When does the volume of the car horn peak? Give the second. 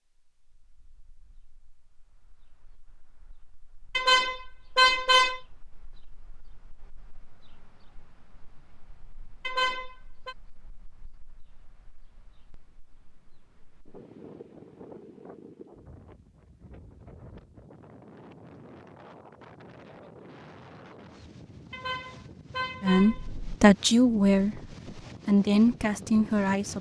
5 s.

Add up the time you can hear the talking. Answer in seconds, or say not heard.
4 s.